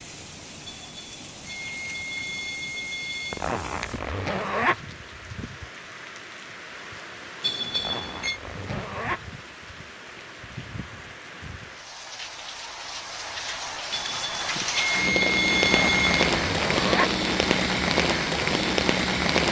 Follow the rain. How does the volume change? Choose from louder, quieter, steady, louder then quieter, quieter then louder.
louder.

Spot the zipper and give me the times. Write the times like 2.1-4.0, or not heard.
3.3-4.8, 7.8-9.2, 15.7-17.1.